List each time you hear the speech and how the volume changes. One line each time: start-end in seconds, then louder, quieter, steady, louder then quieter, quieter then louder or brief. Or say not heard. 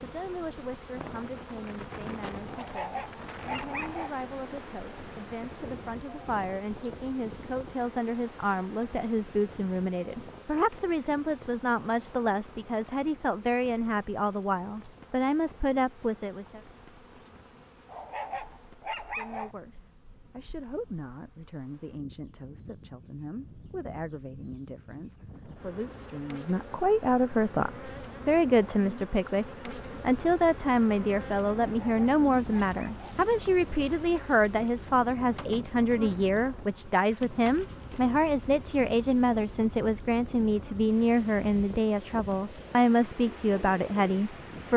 0.0-16.6 louder
19.1-44.7 louder.